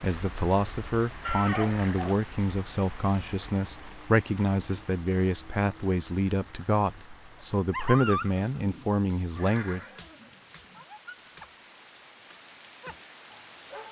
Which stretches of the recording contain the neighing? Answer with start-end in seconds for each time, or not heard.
1.2-2.1, 9.3-10.8.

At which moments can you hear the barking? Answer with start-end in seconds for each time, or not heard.
7.0-11.5, 12.2-13.8.